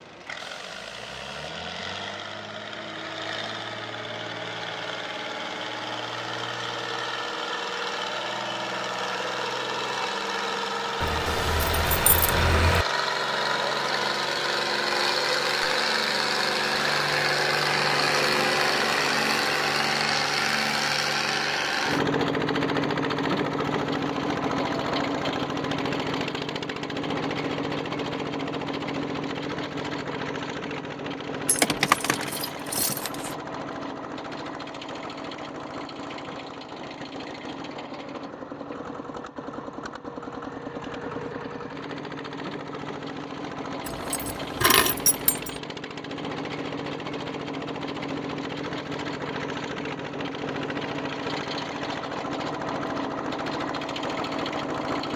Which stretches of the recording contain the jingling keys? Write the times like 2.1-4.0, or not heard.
11.0-12.8, 31.4-33.4, 43.9-45.5.